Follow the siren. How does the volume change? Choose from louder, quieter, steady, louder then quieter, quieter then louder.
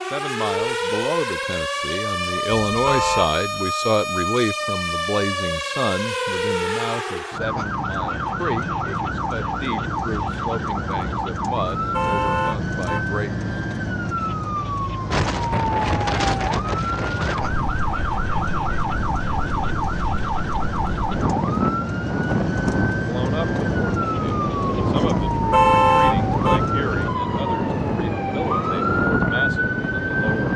steady.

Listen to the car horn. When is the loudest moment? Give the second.
26 s.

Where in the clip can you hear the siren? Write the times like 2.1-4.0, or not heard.
0.0-30.5.